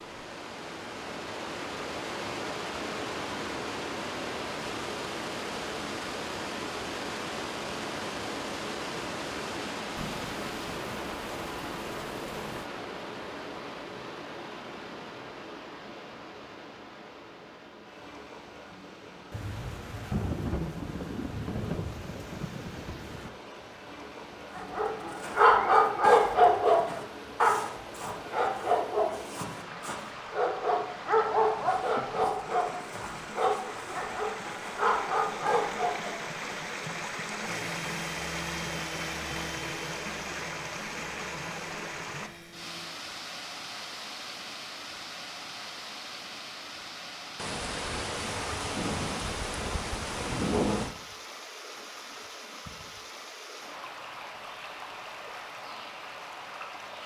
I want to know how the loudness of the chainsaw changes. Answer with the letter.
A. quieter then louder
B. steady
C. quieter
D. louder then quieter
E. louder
C.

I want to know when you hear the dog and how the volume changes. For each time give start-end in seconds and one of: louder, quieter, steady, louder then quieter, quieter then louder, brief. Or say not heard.
24.6-36.2 quieter.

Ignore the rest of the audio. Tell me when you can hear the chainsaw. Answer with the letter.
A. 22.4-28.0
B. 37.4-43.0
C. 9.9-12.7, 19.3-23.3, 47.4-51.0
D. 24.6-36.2
B.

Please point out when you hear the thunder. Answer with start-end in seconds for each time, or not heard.
9.9-12.7, 19.3-23.3, 47.4-51.0.